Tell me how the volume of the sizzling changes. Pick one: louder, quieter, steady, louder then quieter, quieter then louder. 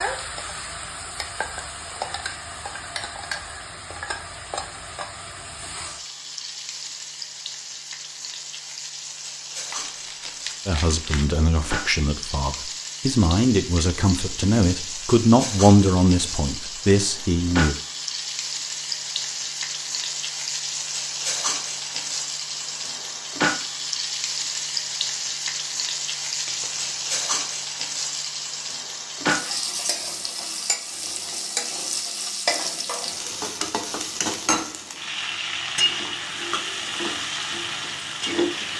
louder.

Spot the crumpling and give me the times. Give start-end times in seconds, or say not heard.
9.7-11.2, 26.2-27.0.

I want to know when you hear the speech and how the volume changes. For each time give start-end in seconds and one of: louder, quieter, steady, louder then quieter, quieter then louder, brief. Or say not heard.
10.7-17.8 louder then quieter.